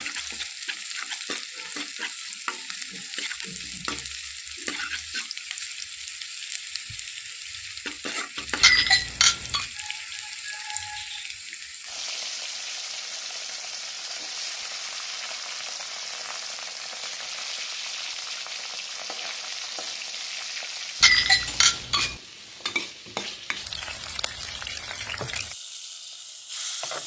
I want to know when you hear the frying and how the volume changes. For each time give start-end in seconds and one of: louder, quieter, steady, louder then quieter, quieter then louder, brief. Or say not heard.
0.0-27.0 steady.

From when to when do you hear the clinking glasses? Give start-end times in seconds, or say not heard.
8.6-9.7, 21.0-22.1.